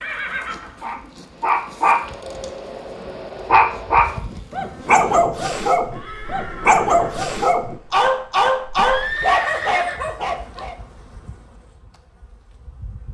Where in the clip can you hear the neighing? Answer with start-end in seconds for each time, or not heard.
0.0-0.8, 5.9-7.2, 8.8-10.1.